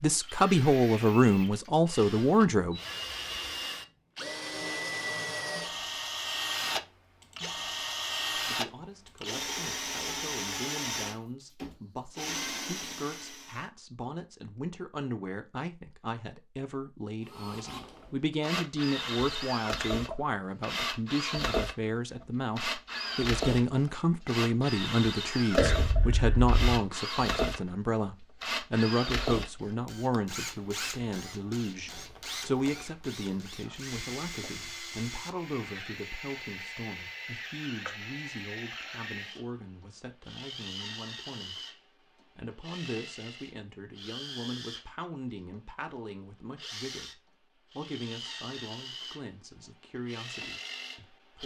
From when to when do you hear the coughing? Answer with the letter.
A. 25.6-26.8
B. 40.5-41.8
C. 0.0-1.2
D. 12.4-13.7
A.